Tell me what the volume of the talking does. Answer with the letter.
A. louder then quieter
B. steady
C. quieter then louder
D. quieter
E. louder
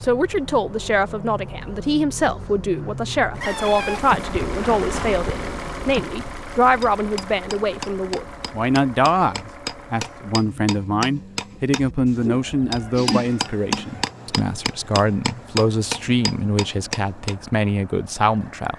B.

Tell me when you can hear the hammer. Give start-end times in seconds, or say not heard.
6.6-17.4.